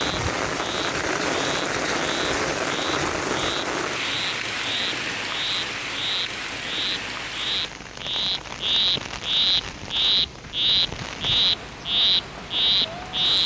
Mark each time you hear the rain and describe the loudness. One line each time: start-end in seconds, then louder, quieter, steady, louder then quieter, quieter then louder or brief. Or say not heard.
0.0-13.4 quieter.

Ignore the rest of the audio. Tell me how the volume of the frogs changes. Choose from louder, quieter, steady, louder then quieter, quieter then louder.
louder.